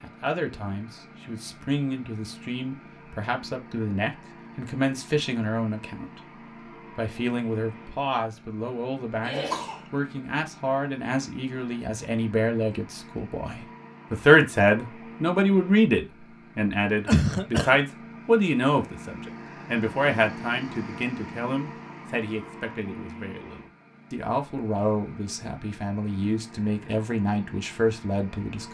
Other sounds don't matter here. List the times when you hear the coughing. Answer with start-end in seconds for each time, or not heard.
9.2-9.8, 17.1-17.8.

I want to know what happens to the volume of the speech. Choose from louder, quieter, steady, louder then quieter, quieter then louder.
louder then quieter.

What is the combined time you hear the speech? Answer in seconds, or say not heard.
28 s.